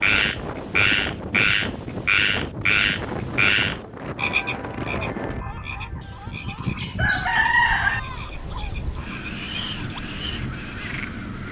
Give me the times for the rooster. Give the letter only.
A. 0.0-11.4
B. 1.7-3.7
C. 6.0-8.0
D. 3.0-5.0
C.